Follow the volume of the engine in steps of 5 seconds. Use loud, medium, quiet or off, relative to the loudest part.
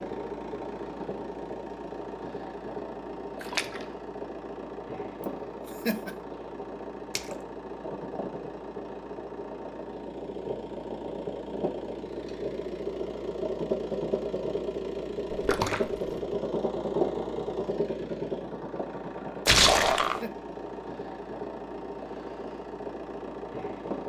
medium, medium, loud, loud, medium.